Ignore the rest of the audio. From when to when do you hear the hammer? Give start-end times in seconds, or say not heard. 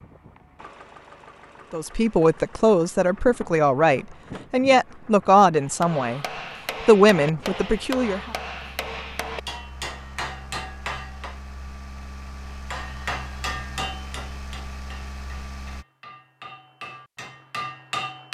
5.6-11.4, 12.5-18.2.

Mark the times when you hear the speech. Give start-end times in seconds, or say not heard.
1.7-6.2, 6.8-8.3.